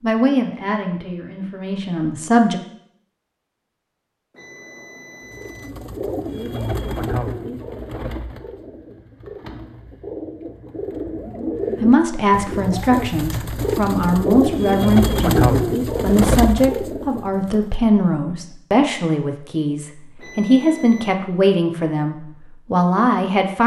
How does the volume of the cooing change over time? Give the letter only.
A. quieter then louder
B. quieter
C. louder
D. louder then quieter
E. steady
A.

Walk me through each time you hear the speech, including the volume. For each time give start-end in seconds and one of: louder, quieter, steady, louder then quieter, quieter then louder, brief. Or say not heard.
0.0-2.6 brief
11.8-23.6 steady.